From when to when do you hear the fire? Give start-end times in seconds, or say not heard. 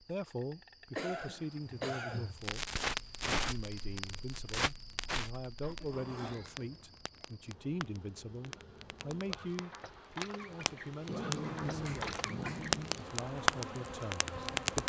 2.4-14.8.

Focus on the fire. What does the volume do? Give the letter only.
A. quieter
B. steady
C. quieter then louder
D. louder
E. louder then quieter
C.